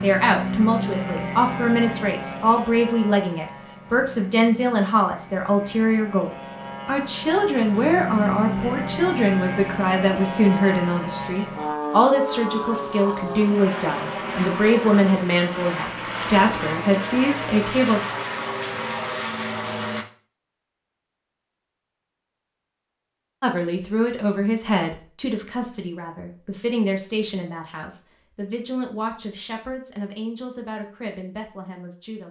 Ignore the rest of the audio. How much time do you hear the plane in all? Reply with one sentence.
The plane can be heard for 20 seconds in total.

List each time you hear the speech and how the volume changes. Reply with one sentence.
The speech can be heard from 0.0 to 18.1 s, at a steady volume; and from 23.4 to 32.2 s, getting quieter.